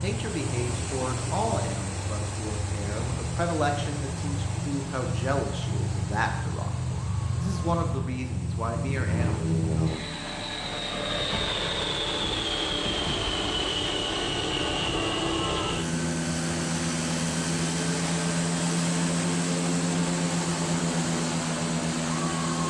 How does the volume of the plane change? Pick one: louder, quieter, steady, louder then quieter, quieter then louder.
louder.